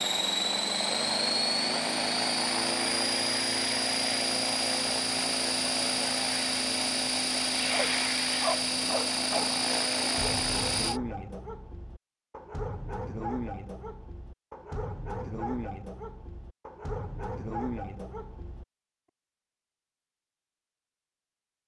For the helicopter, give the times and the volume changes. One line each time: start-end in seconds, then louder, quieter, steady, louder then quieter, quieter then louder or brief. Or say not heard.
0.0-11.0 steady.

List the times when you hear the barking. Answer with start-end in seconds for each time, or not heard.
7.7-18.6.